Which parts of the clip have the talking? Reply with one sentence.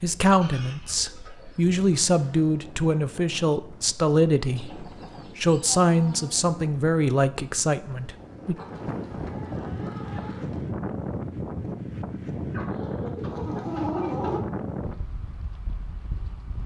You can hear the talking from 0.0 to 8.6 s.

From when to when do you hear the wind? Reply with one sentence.
The wind can be heard from 0.0 to 16.6 s.